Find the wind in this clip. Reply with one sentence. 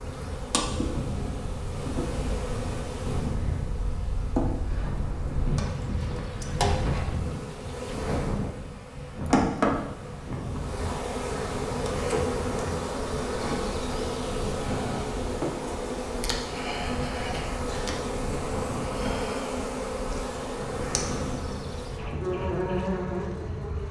The wind can be heard from 0.0 to 23.8 s.